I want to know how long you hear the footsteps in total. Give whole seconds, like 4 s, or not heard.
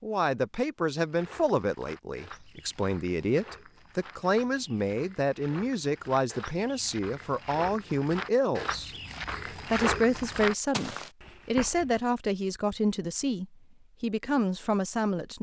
11 s.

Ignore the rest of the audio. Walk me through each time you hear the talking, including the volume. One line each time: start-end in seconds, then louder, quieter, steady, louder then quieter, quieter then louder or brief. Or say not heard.
0.0-15.3 steady.